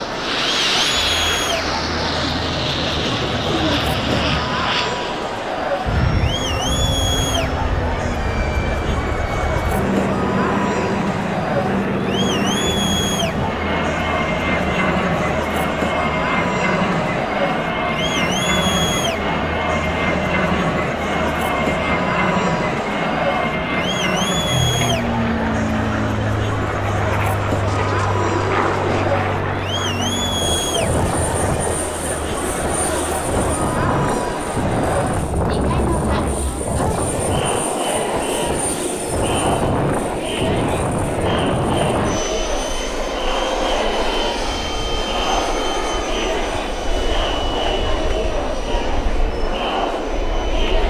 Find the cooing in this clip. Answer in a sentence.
You can hear the cooing from 3.0 to 4.5 s and from 27.6 to 29.1 s.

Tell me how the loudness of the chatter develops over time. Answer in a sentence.
The volume of the chatter stays about the same.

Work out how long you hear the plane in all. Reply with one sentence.
You can hear the plane for 51 seconds altogether.